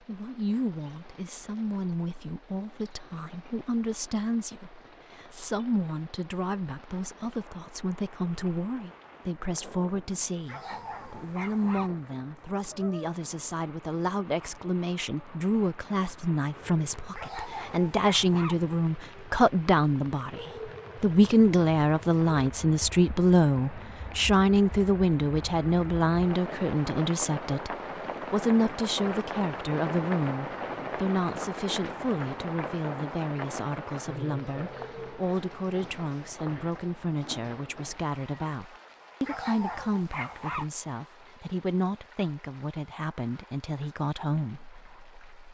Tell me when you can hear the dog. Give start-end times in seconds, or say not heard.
10.4-11.9, 17.1-18.6, 39.2-40.6.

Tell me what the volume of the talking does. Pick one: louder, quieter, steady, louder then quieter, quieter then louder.
louder then quieter.